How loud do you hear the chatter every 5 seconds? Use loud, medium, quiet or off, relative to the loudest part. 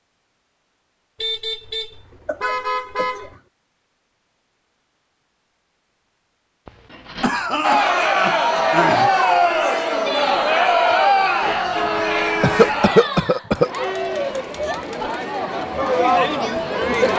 off, loud, loud, loud.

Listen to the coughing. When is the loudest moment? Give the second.
13 s.